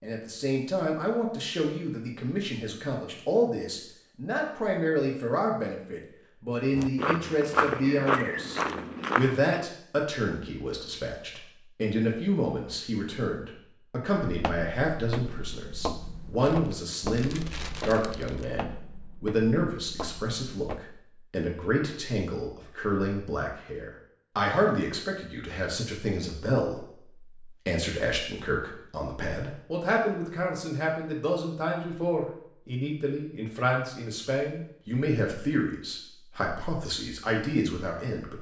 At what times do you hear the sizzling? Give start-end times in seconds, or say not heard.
not heard.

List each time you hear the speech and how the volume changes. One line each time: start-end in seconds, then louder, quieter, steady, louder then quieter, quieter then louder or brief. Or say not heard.
0.0-38.3 steady.